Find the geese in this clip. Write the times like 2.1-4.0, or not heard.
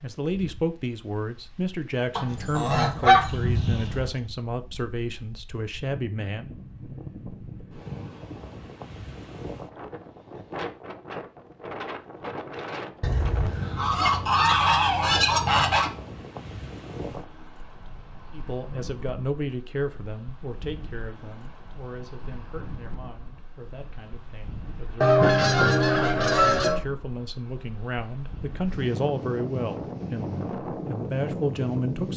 2.1-4.2, 13.0-15.9, 25.0-26.8.